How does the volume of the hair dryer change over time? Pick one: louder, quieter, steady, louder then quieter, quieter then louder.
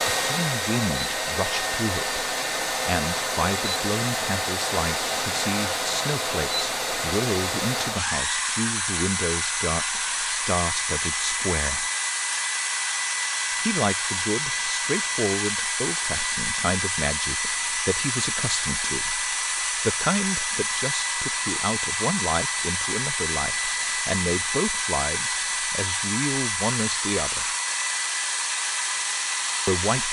steady.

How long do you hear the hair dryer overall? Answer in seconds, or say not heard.
30 s.